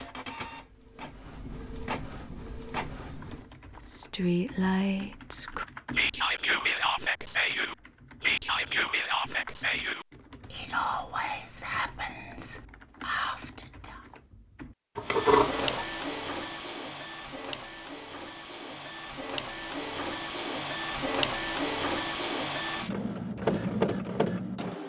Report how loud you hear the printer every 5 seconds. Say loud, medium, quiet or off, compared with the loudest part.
medium, off, off, medium, loud.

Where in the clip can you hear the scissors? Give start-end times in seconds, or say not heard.
14.9-15.8.